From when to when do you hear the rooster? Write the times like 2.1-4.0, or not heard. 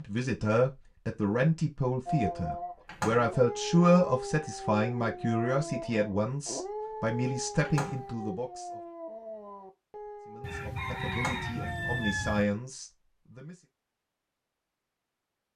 10.4-12.4.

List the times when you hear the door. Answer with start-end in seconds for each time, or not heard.
2.9-3.3, 7.6-8.1, 11.1-11.5.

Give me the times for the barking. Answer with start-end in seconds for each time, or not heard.
2.0-12.1.